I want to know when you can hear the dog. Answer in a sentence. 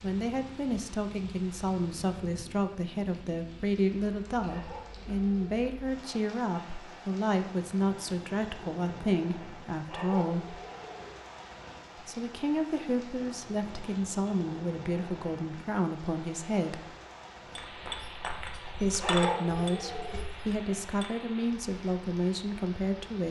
The dog can be heard from 4.5 to 5.5 s, from 9.8 to 11.1 s and from 18.9 to 20.2 s.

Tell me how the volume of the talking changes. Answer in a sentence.
The loudness of the talking stays about the same.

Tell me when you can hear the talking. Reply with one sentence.
The talking can be heard from 0.0 to 10.7 s, from 11.9 to 16.9 s and from 18.8 to 23.2 s.